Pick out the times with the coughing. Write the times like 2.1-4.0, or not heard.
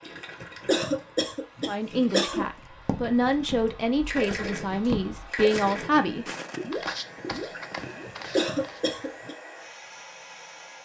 0.4-2.5, 8.1-9.3.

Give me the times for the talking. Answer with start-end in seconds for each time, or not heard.
1.6-6.2.